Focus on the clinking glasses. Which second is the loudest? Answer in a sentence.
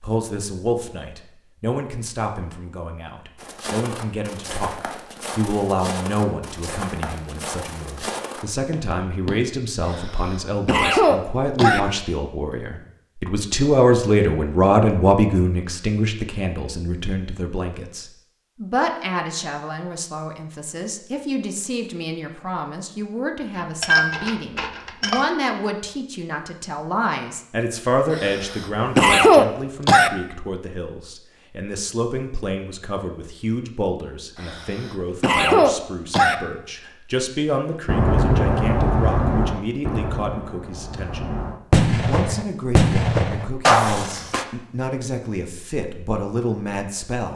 The loudest moment of the clinking glasses is at 24 seconds.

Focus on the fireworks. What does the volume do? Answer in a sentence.
The volume of the fireworks goes down, then up.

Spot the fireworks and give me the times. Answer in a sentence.
You can hear the fireworks from 37.9 to 44.5 s.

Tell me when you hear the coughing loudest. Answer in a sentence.
The volume of the coughing peaks at 29 seconds.